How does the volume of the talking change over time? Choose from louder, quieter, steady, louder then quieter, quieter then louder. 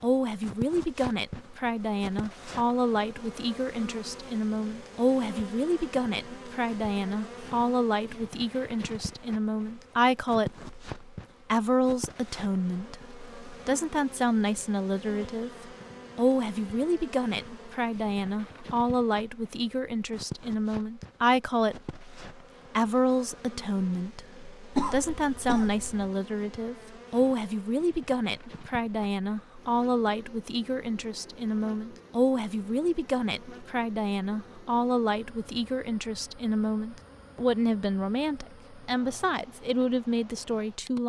steady.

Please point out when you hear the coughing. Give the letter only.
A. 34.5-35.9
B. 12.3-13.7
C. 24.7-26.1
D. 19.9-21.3
C.